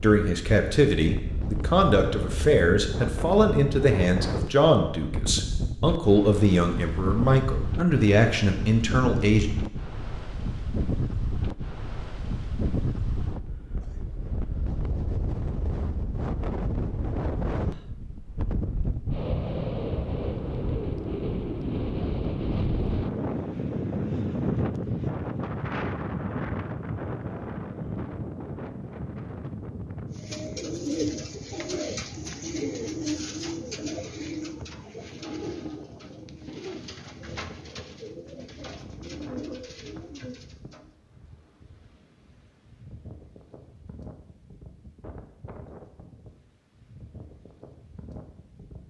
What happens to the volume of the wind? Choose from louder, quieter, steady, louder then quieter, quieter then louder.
quieter.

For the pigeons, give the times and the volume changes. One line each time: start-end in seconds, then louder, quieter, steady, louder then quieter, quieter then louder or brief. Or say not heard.
30.1-40.9 quieter.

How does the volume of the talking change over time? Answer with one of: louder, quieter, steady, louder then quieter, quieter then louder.
steady.